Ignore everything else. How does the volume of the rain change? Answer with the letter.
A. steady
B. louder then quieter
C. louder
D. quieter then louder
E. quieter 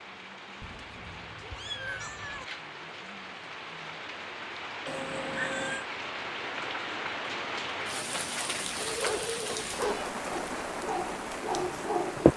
C.